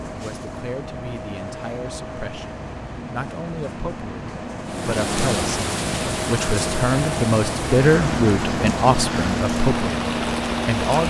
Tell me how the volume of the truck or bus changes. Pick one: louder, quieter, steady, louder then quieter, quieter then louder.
louder.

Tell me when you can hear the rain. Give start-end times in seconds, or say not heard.
4.7-11.0.